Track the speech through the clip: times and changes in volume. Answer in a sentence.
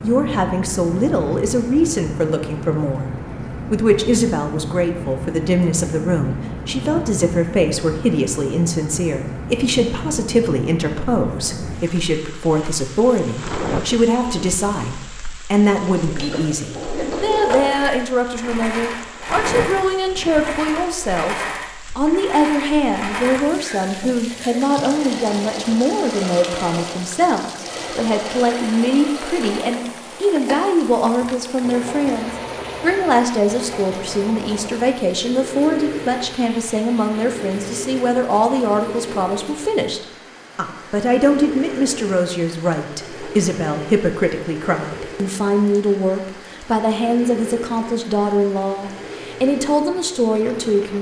The speech can be heard from 0.0 to 50.9 s, at a steady volume.